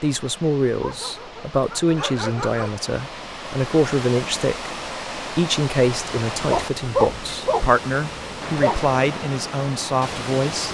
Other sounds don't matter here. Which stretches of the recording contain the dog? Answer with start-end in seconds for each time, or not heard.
0.8-2.8, 6.5-8.8.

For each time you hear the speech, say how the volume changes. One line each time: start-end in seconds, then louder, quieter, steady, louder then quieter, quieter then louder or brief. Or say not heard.
0.0-10.6 steady.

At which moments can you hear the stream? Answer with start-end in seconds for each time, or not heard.
0.0-10.6.